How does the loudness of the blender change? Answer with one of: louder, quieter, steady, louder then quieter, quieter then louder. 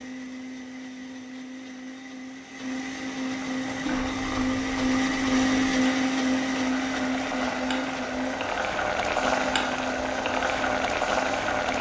louder then quieter.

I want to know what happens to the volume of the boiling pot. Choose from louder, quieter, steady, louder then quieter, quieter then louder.
louder.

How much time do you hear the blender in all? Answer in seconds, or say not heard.
12 s.